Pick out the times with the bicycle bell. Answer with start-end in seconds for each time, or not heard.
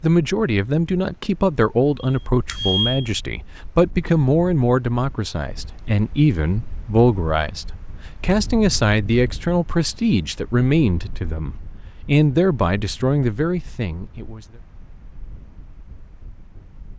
2.0-3.1.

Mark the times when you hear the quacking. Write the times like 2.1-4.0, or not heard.
not heard.